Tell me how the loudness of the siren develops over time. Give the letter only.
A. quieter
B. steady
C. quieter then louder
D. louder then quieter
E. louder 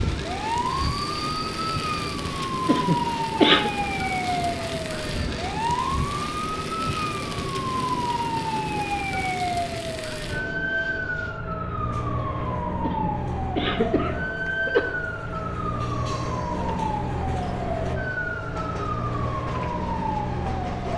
B.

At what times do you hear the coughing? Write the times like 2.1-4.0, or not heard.
2.6-3.7, 12.8-14.8.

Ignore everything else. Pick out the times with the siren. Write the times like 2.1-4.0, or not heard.
0.0-20.9.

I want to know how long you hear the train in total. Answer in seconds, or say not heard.
21 s.